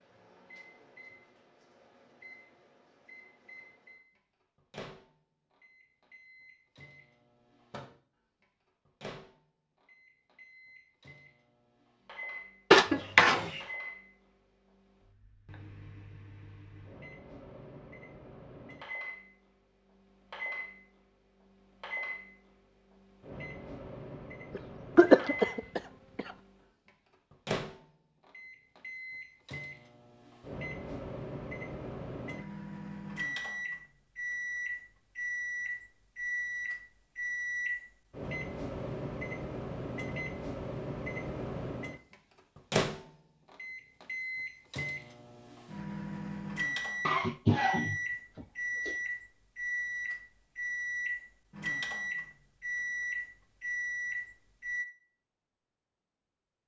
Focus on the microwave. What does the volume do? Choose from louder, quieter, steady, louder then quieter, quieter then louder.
louder.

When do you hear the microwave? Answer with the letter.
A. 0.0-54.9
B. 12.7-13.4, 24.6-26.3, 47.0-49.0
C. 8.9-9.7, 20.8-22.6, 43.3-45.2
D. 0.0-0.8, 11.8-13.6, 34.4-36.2
A.